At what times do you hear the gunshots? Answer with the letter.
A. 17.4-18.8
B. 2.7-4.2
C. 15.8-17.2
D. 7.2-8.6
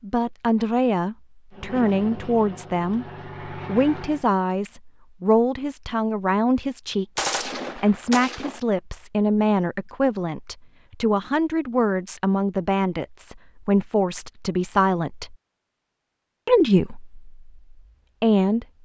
D.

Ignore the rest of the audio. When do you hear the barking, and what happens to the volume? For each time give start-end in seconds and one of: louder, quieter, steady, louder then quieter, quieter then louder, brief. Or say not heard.
not heard.